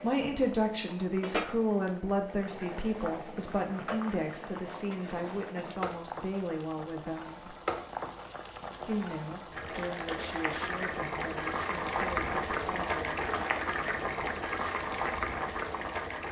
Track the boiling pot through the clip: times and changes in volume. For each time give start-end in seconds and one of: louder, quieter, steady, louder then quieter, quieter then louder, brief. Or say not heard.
0.0-16.2 louder.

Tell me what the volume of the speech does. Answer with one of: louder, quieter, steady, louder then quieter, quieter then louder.
quieter.